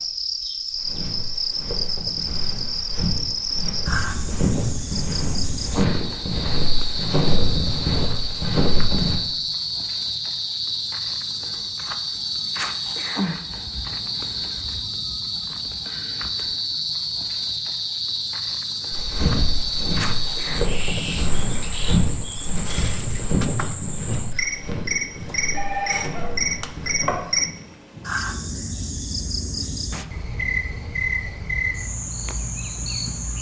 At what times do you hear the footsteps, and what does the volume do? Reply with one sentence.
You can hear the footsteps from 0.7 to 9.2 s, getting louder; and from 18.9 to 27.2 s, getting quieter.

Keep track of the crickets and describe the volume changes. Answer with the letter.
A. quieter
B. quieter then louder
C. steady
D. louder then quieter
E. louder
C.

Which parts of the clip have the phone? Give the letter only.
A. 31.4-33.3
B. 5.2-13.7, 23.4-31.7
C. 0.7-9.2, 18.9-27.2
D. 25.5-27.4
D.